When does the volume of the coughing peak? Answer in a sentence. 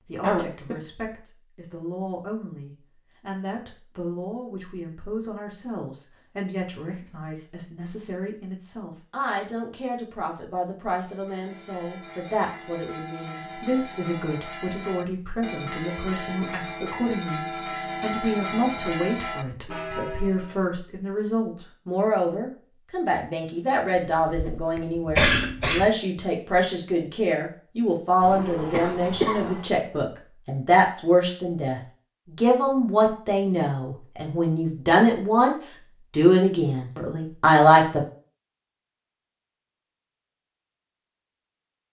The loudest moment of the coughing is at 25 seconds.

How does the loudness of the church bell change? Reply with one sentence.
The volume of the church bell goes up.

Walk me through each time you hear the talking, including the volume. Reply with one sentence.
You can hear the talking from 0.0 to 38.0 s, getting louder.